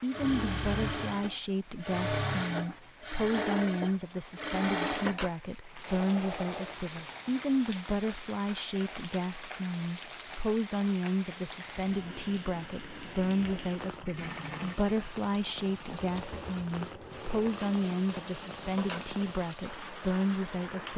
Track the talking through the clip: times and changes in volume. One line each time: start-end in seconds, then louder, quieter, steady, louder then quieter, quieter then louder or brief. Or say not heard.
0.0-20.9 steady.